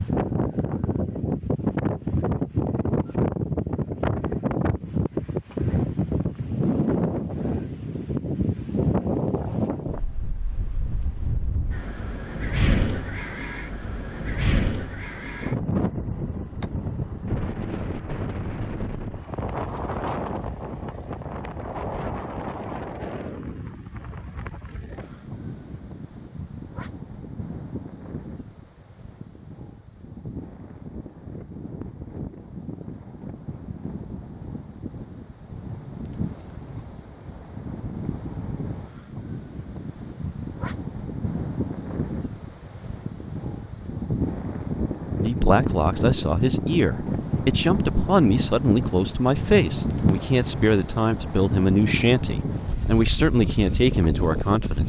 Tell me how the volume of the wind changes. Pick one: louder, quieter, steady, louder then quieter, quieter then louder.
quieter then louder.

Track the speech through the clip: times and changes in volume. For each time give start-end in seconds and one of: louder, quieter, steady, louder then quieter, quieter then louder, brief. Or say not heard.
45.1-54.8 steady.